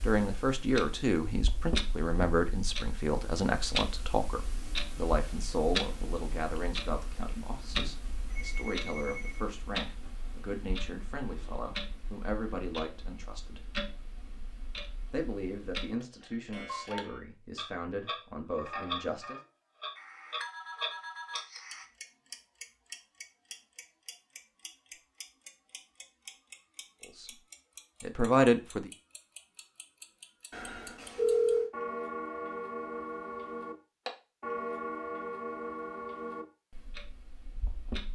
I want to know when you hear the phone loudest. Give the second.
31 s.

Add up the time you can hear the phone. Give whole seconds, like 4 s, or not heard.
5 s.